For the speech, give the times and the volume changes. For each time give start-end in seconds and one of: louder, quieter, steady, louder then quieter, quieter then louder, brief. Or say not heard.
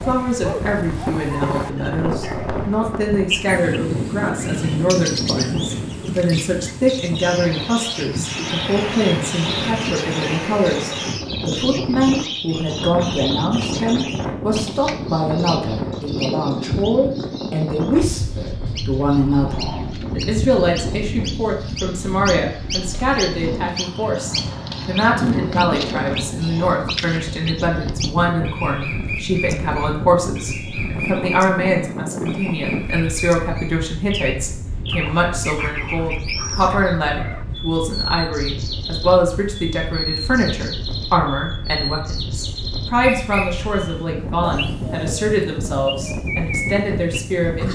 0.1-47.7 steady.